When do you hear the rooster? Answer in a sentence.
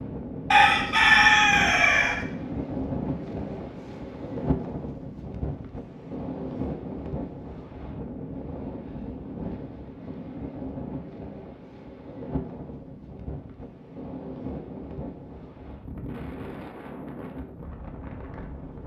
The rooster can be heard from 0.5 to 2.2 s.